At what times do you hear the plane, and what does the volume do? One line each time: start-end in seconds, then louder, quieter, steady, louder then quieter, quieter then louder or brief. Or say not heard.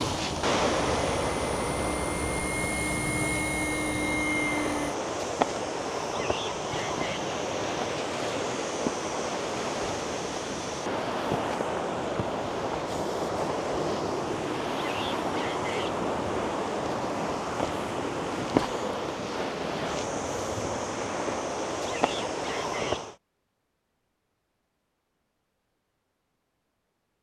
0.1-5.0 louder.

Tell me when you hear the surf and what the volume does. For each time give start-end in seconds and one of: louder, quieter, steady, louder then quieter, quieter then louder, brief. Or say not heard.
0.0-23.1 steady.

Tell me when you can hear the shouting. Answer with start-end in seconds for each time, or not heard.
6.0-7.2, 14.8-15.9, 21.8-23.1.